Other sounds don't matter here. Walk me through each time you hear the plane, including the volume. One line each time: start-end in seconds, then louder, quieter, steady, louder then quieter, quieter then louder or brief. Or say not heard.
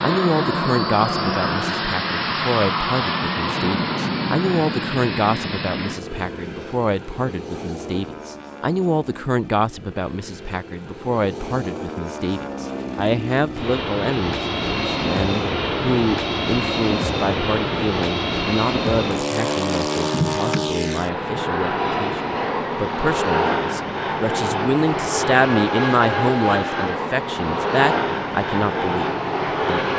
0.0-29.9 quieter then louder.